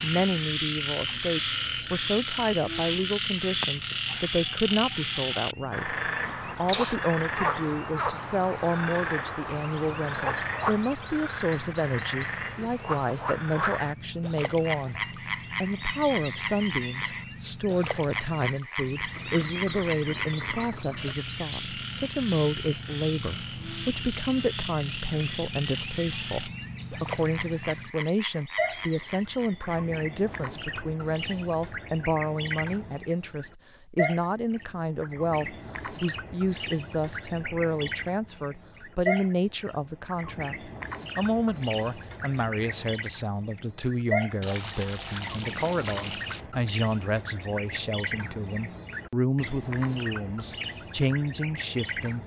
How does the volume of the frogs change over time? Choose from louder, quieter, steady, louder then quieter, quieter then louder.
quieter.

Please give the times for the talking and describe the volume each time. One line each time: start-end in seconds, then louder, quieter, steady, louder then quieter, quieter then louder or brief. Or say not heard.
0.0-52.2 steady.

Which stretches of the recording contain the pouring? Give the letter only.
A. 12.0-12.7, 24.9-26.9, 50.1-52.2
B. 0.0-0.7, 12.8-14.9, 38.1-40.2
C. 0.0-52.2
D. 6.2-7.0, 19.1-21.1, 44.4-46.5
D.